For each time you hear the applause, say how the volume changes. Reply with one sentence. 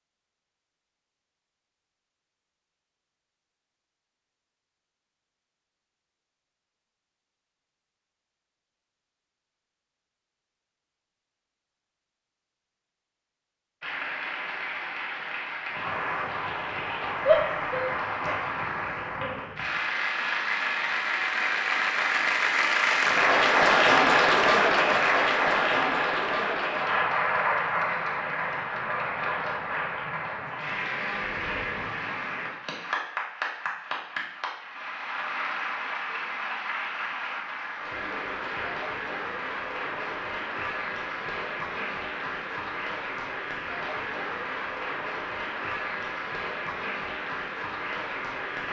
You can hear the applause from 13.8 to 48.6 s, getting louder then quieter.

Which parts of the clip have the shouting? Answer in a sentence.
You can hear the shouting from 17.2 to 18.4 s.